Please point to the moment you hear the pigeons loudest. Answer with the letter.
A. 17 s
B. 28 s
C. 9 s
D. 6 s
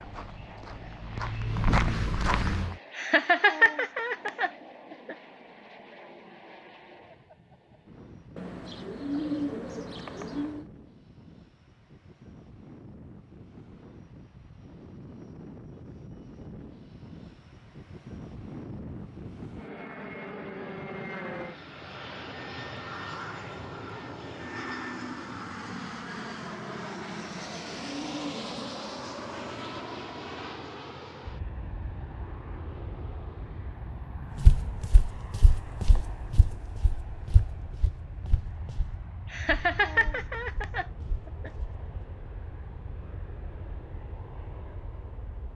C.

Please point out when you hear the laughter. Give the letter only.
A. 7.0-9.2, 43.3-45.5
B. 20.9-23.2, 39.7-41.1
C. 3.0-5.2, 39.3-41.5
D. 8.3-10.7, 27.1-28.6
C.